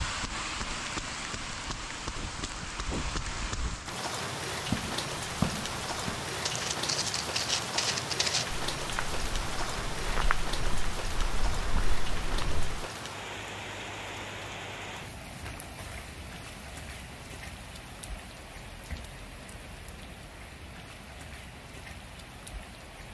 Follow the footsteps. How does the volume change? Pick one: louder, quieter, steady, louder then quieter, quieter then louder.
quieter.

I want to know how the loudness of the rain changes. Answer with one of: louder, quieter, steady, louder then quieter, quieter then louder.
quieter.